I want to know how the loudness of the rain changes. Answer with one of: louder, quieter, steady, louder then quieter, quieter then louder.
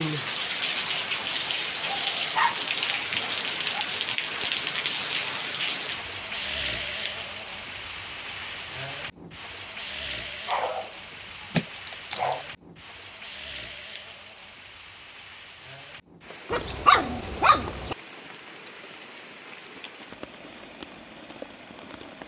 quieter.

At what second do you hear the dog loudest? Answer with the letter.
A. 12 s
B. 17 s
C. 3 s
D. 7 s
B.